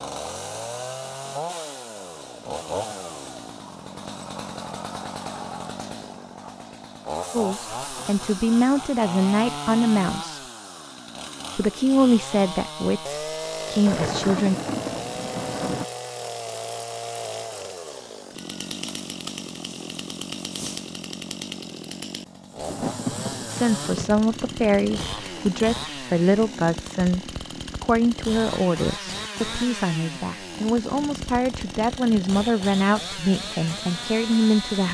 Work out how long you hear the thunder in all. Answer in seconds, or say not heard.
5 s.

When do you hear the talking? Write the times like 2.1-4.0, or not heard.
7.3-10.4, 11.6-14.6, 23.4-34.8.